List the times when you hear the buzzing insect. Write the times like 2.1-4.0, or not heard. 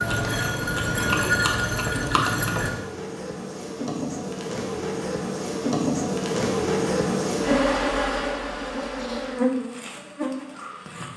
0.0-11.1.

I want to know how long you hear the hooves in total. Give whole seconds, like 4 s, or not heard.
3 s.